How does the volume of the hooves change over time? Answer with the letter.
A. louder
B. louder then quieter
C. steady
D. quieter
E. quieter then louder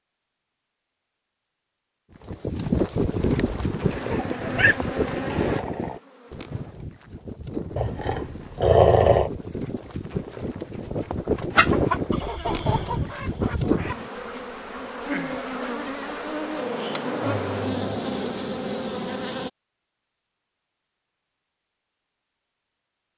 E.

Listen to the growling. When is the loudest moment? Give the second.
9 s.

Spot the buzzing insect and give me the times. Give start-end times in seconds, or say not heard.
3.1-6.8, 13.8-19.5.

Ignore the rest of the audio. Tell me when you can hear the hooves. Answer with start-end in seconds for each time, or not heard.
2.2-14.1.